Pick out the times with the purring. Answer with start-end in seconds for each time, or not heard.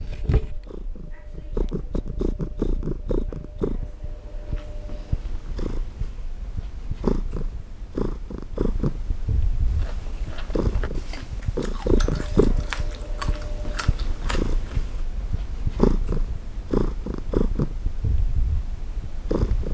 0.0-19.6.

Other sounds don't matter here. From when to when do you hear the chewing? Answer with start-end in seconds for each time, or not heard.
9.7-15.1.